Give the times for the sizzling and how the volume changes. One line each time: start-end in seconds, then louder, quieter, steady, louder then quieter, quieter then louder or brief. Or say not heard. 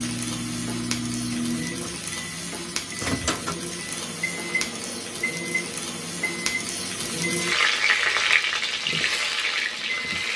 0.0-10.3 louder.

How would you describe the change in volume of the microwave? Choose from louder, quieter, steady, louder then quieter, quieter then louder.
quieter.